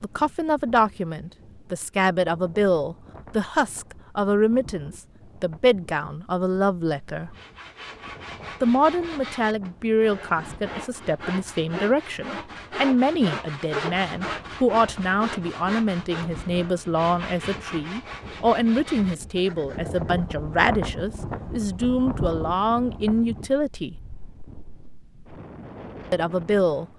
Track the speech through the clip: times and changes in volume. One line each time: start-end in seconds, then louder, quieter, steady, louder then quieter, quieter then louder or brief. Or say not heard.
0.0-7.3 steady
8.6-23.9 steady
26.1-26.9 brief.